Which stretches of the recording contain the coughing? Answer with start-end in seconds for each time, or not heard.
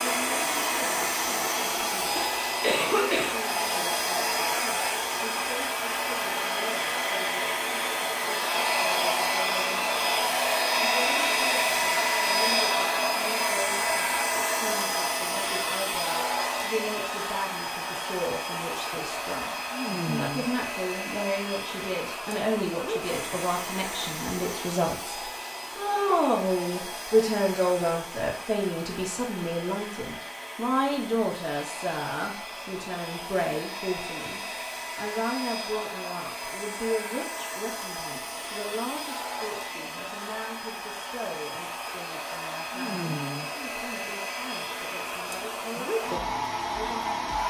2.1-3.4.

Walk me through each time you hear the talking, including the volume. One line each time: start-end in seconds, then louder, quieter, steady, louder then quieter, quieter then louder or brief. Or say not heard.
0.0-25.1 louder
25.8-47.4 quieter.